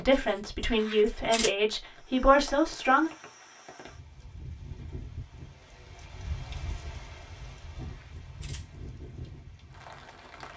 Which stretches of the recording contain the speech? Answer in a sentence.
You can hear the speech from 0.0 to 3.1 s.